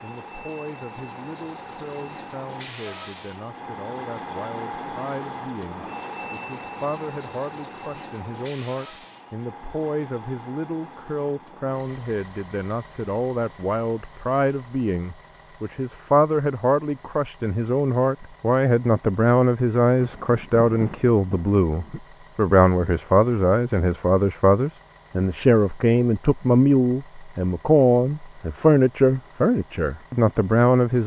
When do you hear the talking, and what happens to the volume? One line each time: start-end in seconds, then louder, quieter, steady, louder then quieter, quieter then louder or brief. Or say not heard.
0.0-31.0 louder.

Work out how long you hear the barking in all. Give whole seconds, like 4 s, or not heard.
not heard.